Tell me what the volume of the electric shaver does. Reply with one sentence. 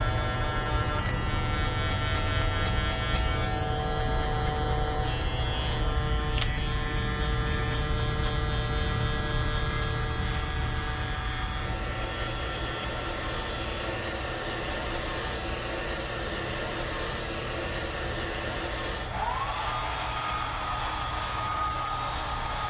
The loudness of the electric shaver goes down.